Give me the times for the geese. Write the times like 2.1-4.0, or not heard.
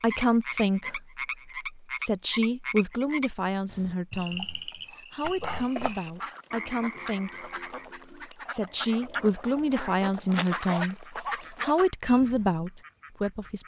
6.0-12.5.